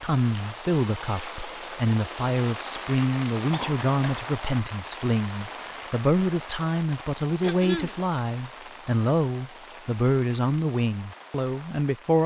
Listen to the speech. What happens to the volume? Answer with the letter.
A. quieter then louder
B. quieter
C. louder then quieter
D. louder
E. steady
E.